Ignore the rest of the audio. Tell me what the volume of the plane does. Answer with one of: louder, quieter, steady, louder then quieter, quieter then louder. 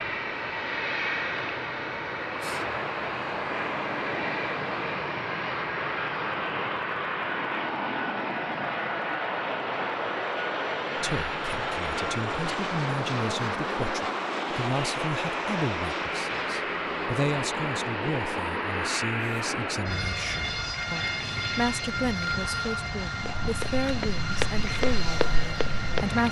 steady.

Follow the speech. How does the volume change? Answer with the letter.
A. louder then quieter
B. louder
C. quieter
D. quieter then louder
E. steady
E.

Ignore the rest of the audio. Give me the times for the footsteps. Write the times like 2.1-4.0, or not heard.
23.2-26.1.